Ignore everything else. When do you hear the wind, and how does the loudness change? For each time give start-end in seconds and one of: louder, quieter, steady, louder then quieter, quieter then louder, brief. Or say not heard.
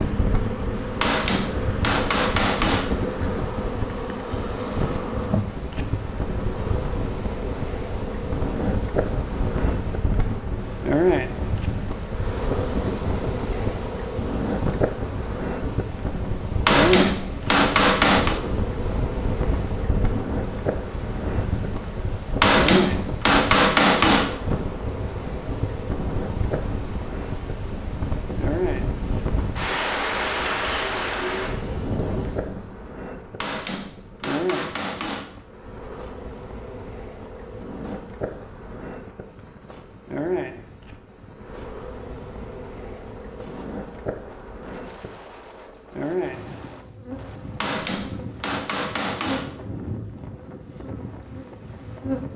0.0-52.3 quieter.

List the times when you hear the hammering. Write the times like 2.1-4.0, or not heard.
1.0-3.0, 16.6-18.4, 22.4-24.4, 33.4-35.4, 47.6-49.5.